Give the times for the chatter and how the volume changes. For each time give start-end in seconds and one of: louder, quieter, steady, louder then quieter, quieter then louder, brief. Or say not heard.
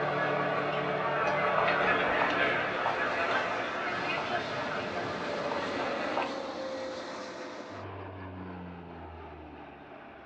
0.0-6.2 quieter.